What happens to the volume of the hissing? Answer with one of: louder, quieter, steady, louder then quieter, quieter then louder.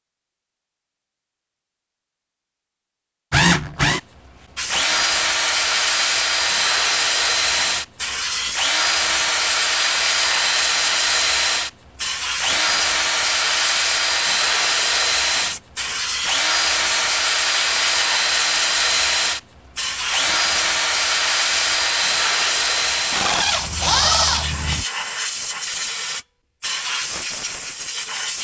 steady.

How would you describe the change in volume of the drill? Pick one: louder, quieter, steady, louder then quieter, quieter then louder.
steady.